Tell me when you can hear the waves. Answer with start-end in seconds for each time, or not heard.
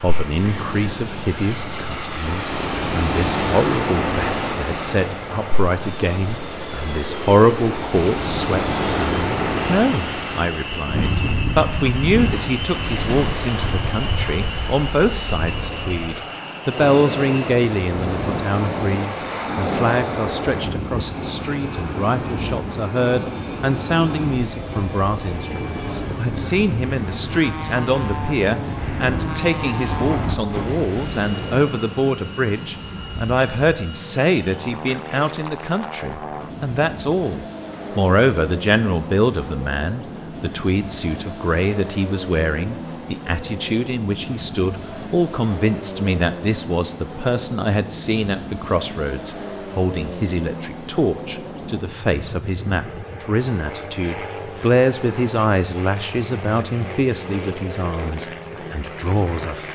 0.0-31.7.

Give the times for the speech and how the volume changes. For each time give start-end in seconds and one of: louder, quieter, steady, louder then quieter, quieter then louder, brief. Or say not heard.
0.0-59.7 steady.